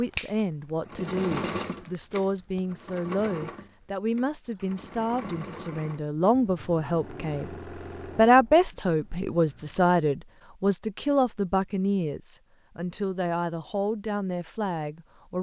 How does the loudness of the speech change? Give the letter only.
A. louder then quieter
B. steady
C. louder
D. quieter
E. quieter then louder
A.